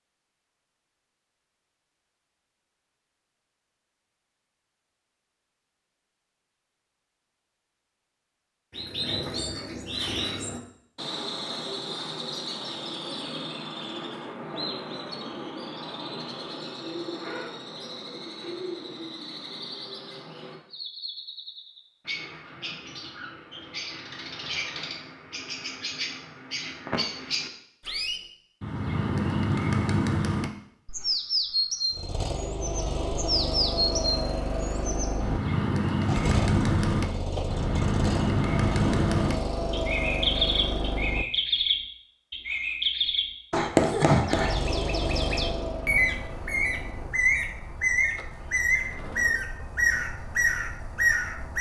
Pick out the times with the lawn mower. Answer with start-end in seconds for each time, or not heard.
31.9-41.4, 44.3-49.4.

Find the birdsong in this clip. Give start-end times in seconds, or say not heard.
8.7-51.5.